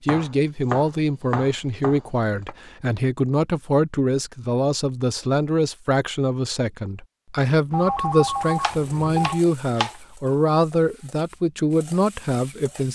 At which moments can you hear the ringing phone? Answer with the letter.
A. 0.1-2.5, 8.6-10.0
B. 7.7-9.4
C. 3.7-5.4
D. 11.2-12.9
B.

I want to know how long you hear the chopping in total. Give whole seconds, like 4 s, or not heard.
4 s.